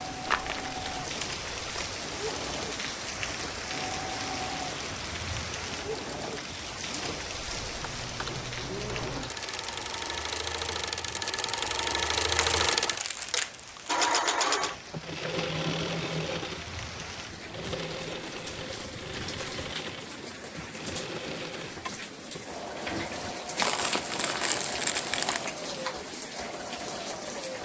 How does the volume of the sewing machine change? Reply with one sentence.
The loudness of the sewing machine goes up, then down.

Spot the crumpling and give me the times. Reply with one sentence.
The crumpling can be heard from 0.2 to 1.9 s, from 12.3 to 14.2 s and from 23.6 to 25.5 s.